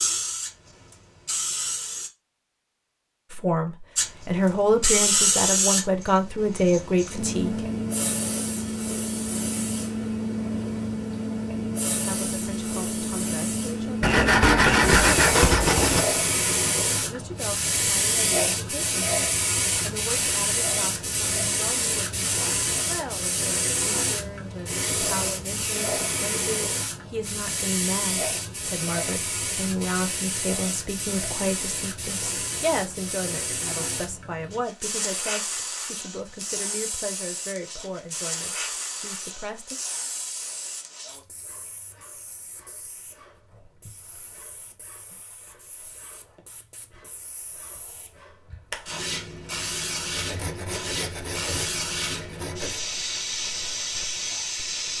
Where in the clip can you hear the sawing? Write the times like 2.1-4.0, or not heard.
14.0-16.1, 50.1-52.9.